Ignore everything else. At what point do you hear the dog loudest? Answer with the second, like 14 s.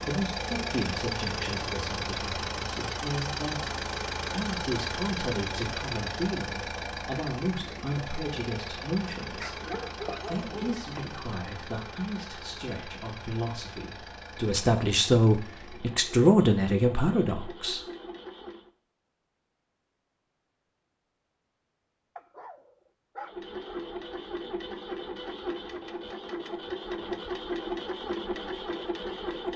10 s.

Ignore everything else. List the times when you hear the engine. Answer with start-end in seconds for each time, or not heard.
0.0-18.7, 23.2-29.5.